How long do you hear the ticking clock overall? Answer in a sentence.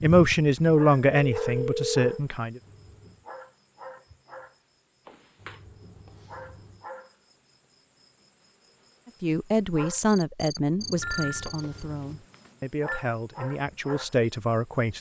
You can't hear the ticking clock here.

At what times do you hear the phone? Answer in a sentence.
You can hear the phone from 1.1 to 2.1 s, from 5.0 to 5.6 s and from 11.0 to 13.0 s.